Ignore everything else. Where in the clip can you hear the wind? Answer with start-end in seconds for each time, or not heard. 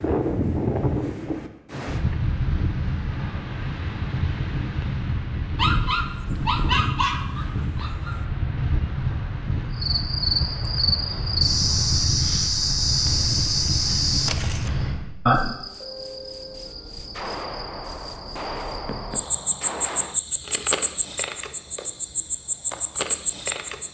0.0-15.2.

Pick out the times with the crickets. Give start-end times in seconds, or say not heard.
9.8-23.8.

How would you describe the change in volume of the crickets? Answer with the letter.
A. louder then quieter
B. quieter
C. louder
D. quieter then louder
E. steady
D.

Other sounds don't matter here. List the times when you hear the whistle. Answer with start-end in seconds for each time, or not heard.
not heard.